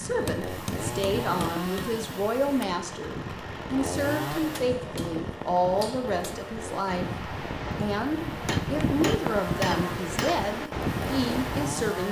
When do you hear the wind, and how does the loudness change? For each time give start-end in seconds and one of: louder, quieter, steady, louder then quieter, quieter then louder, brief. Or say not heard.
0.0-12.0 louder.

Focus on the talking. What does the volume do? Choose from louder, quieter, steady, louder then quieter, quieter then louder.
steady.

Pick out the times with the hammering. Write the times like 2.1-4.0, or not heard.
0.2-1.9, 4.3-6.3, 8.4-10.4.